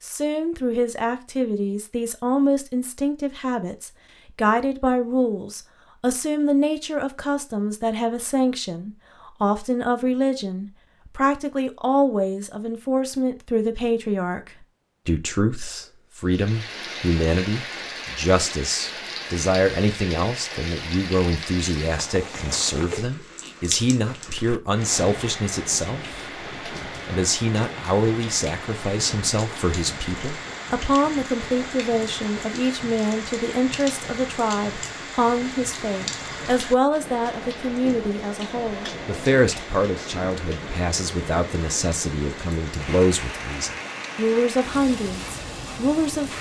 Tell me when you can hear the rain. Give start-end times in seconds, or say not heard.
16.2-46.3.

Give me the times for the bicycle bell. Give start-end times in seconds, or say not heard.
not heard.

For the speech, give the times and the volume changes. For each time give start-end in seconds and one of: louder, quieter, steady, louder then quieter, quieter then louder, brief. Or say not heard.
0.0-46.3 steady.